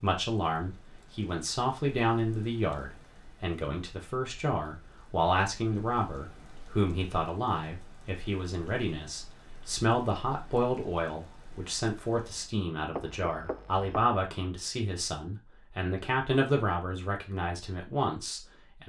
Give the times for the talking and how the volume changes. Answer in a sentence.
The talking can be heard from 0.0 to 18.8 s, at a steady volume.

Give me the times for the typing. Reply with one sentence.
The typing can't be heard in this clip.